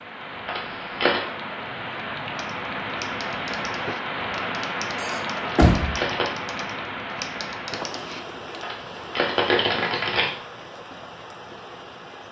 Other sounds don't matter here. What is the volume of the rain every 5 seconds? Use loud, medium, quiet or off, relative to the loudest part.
loud, loud, medium.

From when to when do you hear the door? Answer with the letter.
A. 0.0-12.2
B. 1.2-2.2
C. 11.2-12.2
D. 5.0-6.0
D.